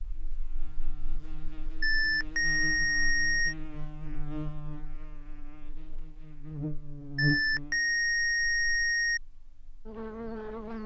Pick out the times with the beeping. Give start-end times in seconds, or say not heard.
1.8-3.5, 7.2-9.2.